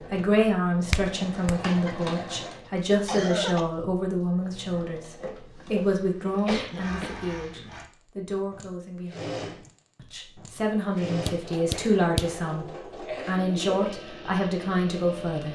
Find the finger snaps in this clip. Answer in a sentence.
You can hear the finger snaps from 0.9 to 1.6 s and from 11.2 to 12.2 s.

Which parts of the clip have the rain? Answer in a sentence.
You can't hear the rain here.